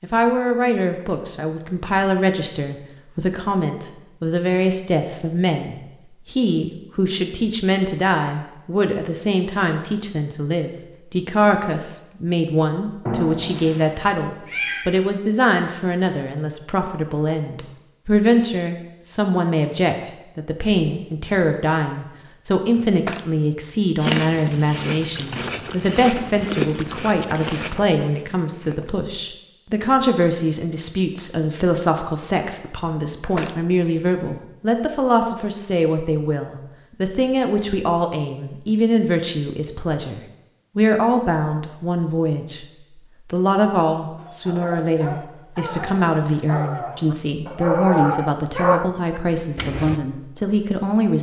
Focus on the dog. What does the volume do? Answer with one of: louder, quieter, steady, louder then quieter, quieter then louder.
louder.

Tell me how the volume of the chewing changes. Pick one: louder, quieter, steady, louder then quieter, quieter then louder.
louder then quieter.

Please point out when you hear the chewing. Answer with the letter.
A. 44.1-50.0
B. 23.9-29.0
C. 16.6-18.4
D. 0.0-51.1
B.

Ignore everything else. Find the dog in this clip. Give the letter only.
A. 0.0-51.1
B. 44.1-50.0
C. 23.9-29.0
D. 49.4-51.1
B.